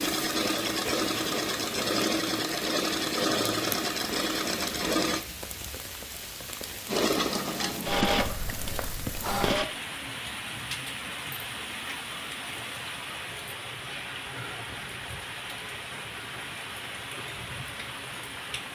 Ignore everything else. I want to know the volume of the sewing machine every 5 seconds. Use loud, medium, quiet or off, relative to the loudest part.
loud, loud, off, off.